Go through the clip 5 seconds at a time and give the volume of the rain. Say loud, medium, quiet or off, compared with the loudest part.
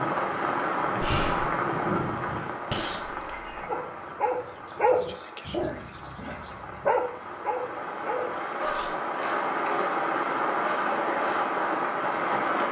loud, medium, loud.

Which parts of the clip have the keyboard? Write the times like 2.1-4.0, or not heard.
not heard.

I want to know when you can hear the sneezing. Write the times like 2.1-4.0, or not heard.
2.7-3.7.